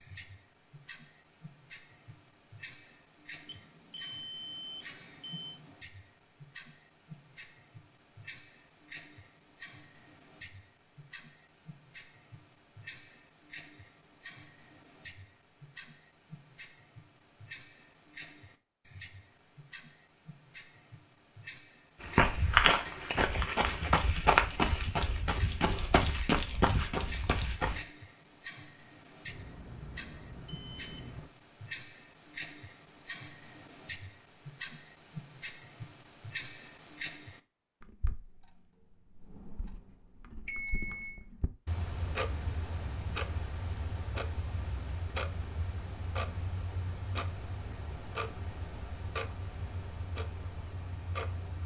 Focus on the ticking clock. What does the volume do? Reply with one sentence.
The loudness of the ticking clock goes up.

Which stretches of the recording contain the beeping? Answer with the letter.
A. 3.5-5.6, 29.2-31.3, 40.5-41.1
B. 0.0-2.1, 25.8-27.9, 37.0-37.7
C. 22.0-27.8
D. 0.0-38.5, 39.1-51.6
A.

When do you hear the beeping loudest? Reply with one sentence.
The loudest moment of the beeping is at 41 seconds.